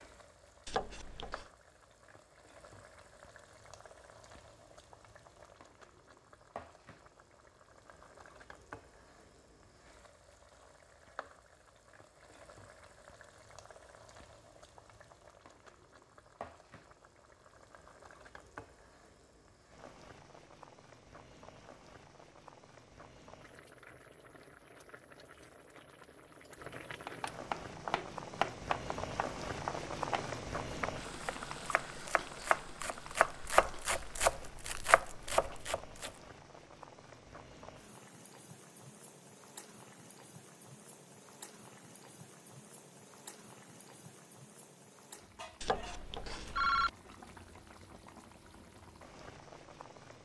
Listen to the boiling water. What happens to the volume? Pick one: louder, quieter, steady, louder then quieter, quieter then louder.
louder then quieter.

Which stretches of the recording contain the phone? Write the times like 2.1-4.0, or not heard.
0.7-1.4, 45.6-46.9.